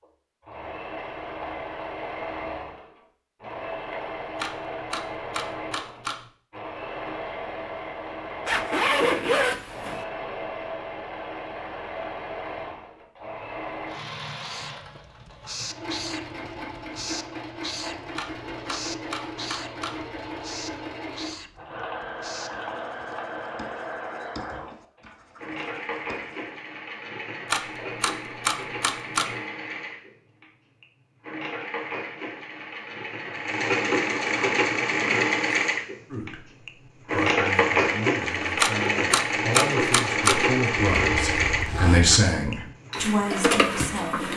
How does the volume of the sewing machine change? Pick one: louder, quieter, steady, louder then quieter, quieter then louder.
louder.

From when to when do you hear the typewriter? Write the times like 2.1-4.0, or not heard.
4.3-6.2, 18.1-20.1, 27.4-29.4, 38.5-40.5.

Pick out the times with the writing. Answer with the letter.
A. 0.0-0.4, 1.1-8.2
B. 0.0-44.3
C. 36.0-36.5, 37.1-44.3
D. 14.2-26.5
D.